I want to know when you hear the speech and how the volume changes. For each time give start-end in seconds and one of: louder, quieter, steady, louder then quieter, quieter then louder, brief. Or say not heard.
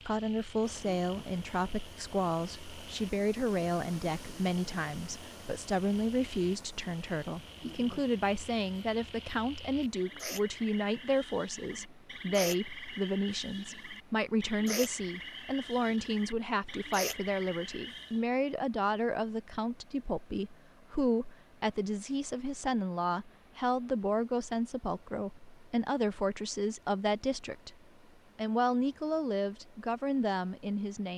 0.1-27.8 steady
28.4-31.1 brief.